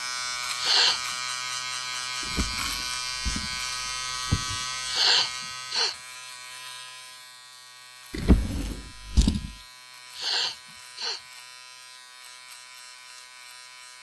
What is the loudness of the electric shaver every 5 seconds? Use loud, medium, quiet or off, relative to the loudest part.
loud, medium, quiet.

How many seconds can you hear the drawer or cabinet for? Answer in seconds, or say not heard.
4 s.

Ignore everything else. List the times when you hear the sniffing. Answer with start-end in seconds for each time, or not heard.
0.6-1.0, 4.8-6.0, 10.2-11.2.